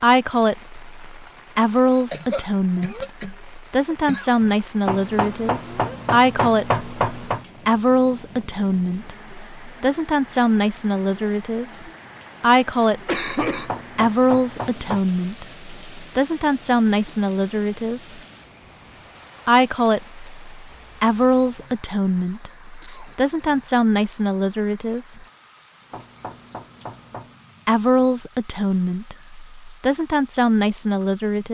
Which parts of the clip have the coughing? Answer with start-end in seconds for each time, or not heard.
1.9-4.5, 13.1-13.7, 22.6-23.2.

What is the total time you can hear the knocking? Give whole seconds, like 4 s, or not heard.
6 s.